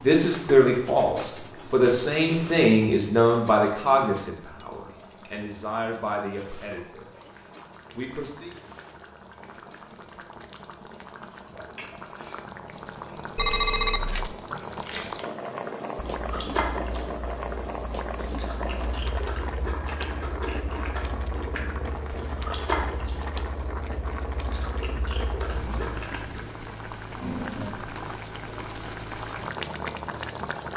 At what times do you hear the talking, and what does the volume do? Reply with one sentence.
The talking can be heard from 0.0 to 7.1 s, getting quieter then louder; and briefly from 7.9 to 8.6 s.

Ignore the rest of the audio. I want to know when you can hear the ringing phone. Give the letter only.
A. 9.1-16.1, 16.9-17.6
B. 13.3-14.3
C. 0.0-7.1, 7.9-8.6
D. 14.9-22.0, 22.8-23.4
B.